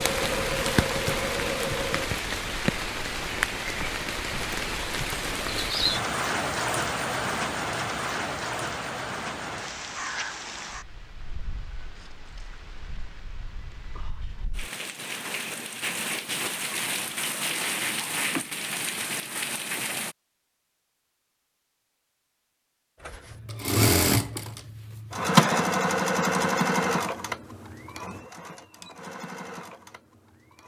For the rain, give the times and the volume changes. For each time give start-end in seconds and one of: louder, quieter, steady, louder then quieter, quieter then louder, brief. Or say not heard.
0.0-20.1 quieter then louder.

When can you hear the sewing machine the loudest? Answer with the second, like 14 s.
26 s.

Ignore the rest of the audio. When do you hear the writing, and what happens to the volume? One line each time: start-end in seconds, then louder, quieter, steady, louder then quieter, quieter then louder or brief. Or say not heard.
not heard.